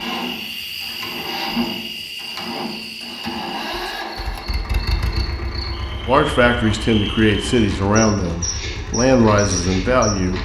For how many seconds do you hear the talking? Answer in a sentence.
You can hear the talking for 4 seconds altogether.